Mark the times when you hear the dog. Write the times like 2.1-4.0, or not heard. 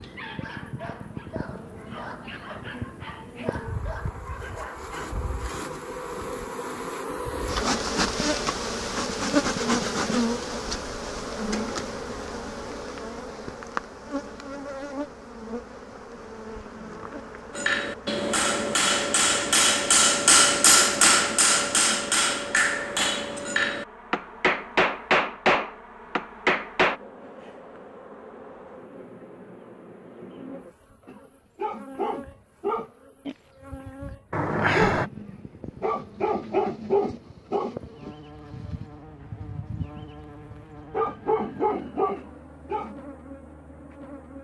0.0-5.2, 31.1-43.0.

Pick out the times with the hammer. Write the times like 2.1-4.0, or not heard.
17.5-26.9.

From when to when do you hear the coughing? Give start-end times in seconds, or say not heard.
34.3-35.1.